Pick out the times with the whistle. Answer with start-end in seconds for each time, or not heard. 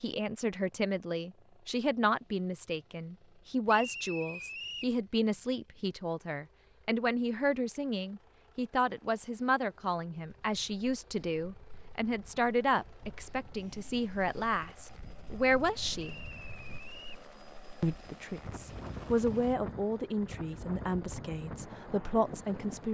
3.6-5.0, 16.0-17.2.